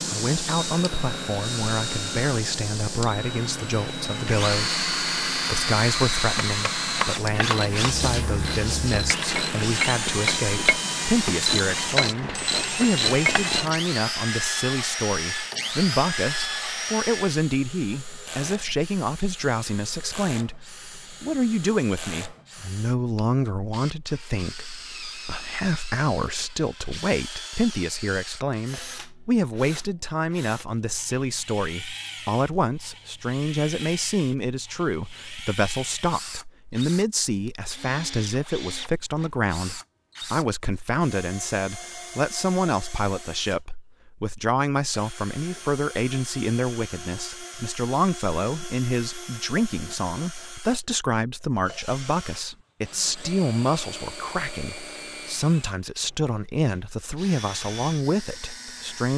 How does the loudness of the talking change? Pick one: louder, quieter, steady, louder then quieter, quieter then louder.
steady.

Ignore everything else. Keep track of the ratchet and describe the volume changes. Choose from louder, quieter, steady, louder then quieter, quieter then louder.
louder.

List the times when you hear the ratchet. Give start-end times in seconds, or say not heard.
7.3-13.8.